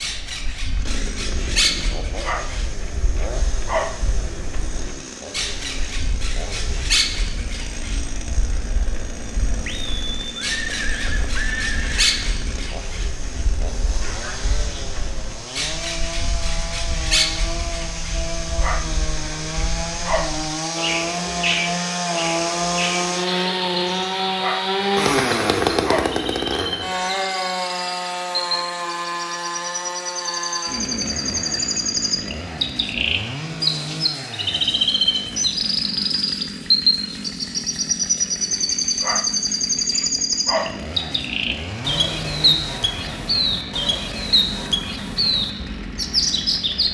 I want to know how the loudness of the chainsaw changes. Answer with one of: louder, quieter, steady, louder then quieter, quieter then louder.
louder then quieter.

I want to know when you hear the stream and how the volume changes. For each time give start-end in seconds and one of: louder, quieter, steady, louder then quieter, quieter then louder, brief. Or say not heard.
not heard.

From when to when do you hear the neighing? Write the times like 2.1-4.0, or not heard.
9.7-12.2.